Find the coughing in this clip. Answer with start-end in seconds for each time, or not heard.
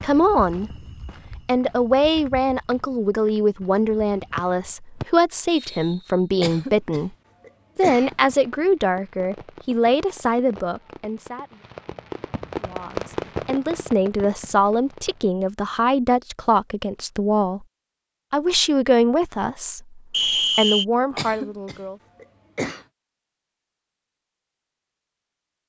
6.4-8.2, 21.1-22.9.